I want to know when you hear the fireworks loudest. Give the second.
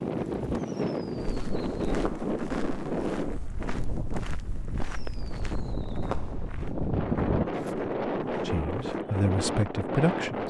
7 s.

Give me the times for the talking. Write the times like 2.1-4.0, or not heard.
8.4-10.4.